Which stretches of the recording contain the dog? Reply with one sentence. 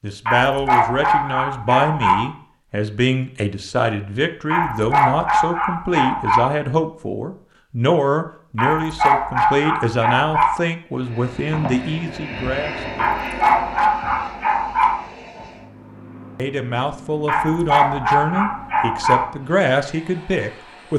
You can hear the dog from 0.2 to 2.2 s, from 4.5 to 6.5 s, from 8.6 to 10.6 s, from 12.9 to 15.0 s and from 17.2 to 19.2 s.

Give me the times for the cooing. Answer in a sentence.
You can't hear the cooing here.